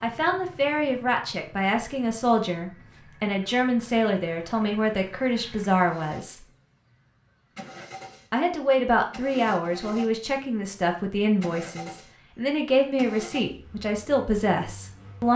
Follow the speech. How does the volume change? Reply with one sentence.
The volume of the speech stays about the same.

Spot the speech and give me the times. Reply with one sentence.
You can hear the speech from 0.0 to 6.5 s and from 8.3 to 15.3 s.